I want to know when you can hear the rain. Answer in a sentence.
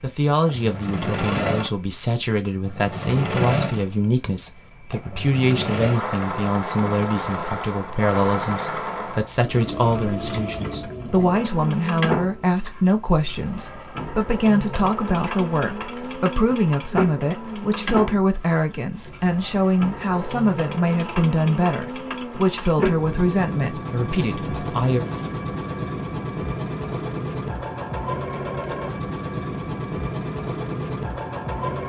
The rain can't be heard in this clip.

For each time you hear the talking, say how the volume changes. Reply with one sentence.
The talking can be heard from 0.0 to 25.1 s, at a steady volume.